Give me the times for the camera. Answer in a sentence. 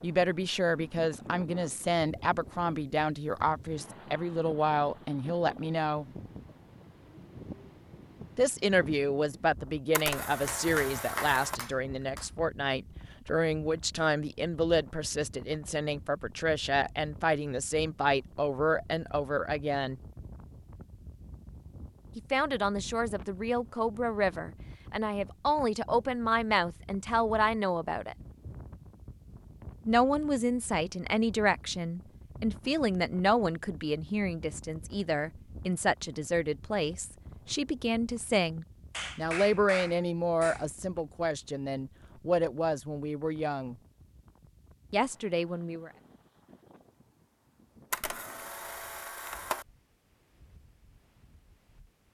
You can hear the camera from 9.9 to 11.6 s and from 47.9 to 49.6 s.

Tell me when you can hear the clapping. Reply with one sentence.
The clapping can be heard from 10.4 to 12.2 s and from 38.9 to 40.6 s.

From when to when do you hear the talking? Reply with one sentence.
You can hear the talking from 0.0 to 6.0 s, from 8.3 to 20.0 s, from 22.1 to 28.1 s, from 29.9 to 43.8 s and from 44.9 to 45.9 s.